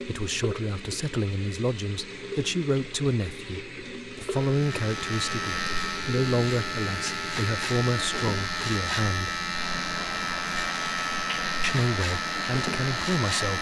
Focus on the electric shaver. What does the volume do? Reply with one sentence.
The volume of the electric shaver stays about the same.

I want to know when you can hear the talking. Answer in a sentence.
You can hear the talking from 0.1 to 9.3 s and from 11.6 to 13.5 s.